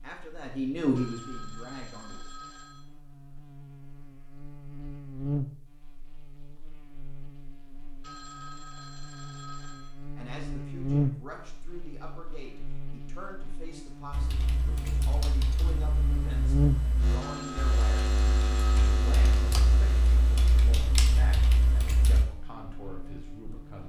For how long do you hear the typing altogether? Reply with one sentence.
You can hear the typing for 8 seconds altogether.